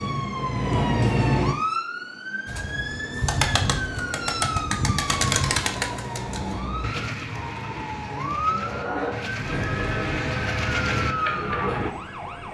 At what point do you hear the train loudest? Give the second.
1 s.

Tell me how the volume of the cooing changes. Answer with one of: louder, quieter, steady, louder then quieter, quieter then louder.
quieter then louder.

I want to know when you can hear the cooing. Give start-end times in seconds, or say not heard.
2.5-11.9.